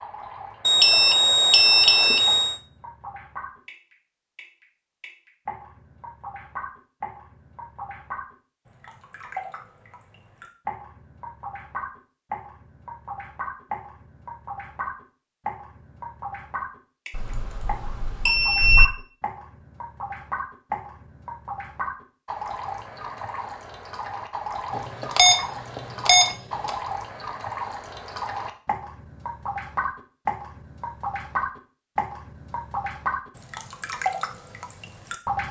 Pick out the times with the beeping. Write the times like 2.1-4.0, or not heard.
0.7-2.5, 17.1-18.9, 24.8-26.7.